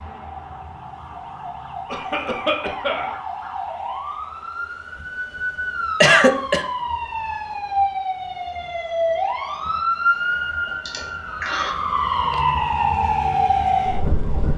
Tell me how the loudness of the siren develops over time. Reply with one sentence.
The volume of the siren goes up.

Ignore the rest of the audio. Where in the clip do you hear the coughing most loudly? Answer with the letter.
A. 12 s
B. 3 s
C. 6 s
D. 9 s
C.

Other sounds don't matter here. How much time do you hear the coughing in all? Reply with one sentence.
The coughing can be heard for 3 seconds in total.